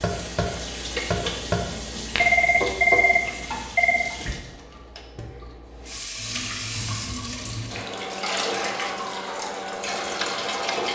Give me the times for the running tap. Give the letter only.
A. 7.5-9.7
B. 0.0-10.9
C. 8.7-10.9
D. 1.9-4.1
B.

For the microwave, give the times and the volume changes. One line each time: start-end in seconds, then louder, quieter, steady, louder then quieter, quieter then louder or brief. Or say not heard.
not heard.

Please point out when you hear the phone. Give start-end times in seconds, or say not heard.
1.9-4.1.